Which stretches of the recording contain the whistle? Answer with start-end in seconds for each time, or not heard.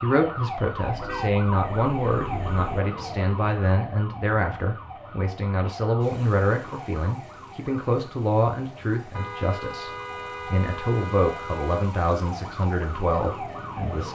not heard.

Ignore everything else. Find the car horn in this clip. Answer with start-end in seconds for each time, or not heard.
0.8-2.8, 9.2-11.9.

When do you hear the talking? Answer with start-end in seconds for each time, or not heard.
0.0-14.1.